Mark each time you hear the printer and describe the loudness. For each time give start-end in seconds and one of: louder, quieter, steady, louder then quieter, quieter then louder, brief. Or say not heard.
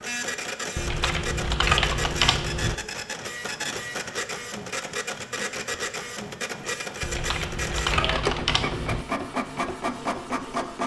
0.0-10.8 steady.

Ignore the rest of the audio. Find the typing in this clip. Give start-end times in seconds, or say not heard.
0.8-2.8, 7.0-9.1.